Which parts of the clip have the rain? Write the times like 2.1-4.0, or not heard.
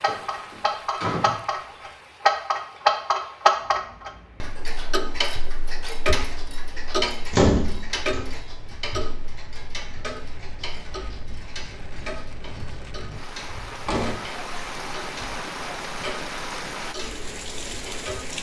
0.0-18.3.